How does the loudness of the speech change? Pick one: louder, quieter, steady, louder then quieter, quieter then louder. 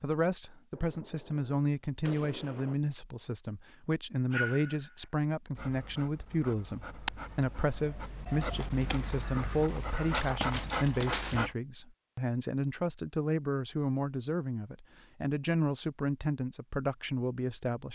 steady.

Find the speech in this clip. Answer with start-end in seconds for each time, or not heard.
0.0-17.9.